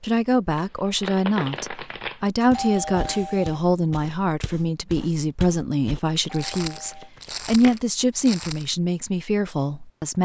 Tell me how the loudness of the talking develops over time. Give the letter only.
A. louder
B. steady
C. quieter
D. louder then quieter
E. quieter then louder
B.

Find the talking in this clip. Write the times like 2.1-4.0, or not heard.
0.0-10.2.